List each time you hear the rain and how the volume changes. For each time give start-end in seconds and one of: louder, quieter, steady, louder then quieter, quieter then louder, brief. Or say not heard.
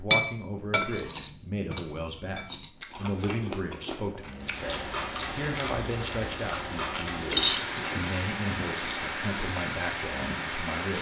4.3-10.9 steady.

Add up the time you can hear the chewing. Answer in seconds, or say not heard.
5 s.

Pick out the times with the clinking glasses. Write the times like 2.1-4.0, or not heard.
0.1-2.6, 7.2-9.1.